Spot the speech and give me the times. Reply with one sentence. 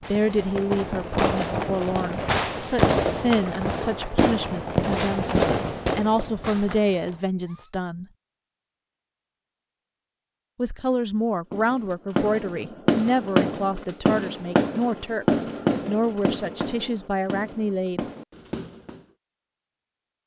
The speech can be heard from 0.1 to 8.1 s and from 10.6 to 18.1 s.